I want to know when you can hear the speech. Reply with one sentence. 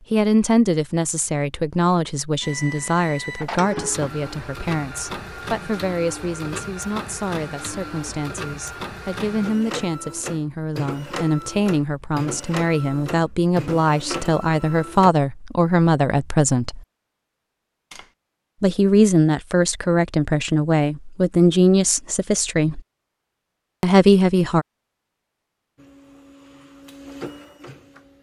The speech can be heard from 0.1 to 16.8 s, from 18.6 to 22.8 s and from 23.8 to 24.6 s.